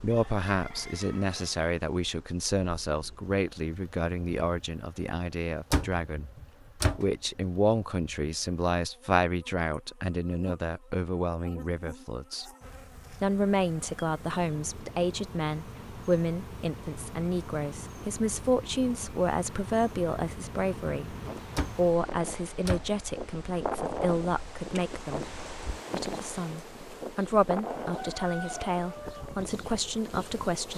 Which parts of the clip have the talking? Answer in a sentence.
The talking can be heard from 0.0 to 12.5 s, from 13.1 to 25.3 s and from 25.9 to 30.7 s.